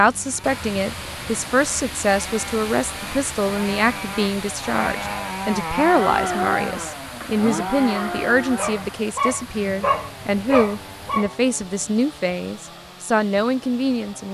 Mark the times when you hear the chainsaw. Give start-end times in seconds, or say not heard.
0.1-14.2.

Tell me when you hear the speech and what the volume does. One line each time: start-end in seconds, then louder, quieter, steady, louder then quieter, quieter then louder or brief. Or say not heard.
0.0-14.2 steady.